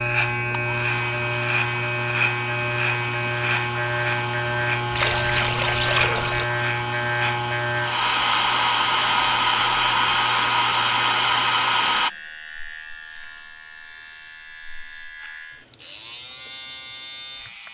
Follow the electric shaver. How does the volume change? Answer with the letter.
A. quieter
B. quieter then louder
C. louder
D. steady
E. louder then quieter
A.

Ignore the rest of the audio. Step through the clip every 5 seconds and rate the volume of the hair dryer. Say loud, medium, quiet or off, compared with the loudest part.
quiet, loud, loud, off.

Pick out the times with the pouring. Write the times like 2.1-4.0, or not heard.
4.9-6.5.